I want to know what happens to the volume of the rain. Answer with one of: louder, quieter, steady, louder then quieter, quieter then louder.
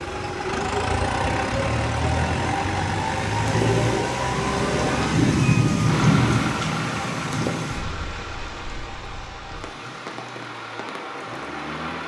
louder then quieter.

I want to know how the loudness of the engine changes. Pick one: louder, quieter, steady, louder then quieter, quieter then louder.
quieter.